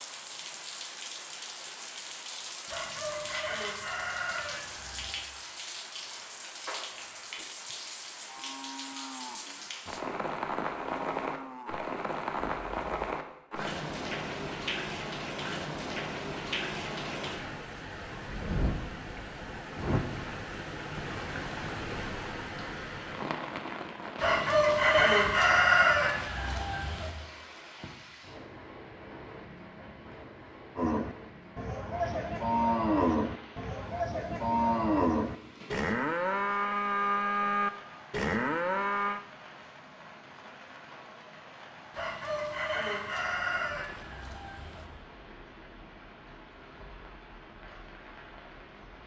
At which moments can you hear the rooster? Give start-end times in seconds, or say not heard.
2.6-5.2, 24.1-27.1, 41.9-44.9.